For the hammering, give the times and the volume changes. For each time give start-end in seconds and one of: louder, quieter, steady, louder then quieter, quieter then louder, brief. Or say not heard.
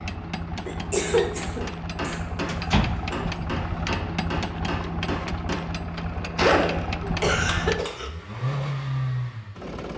1.6-8.0 louder.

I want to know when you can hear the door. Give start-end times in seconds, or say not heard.
2.5-3.4.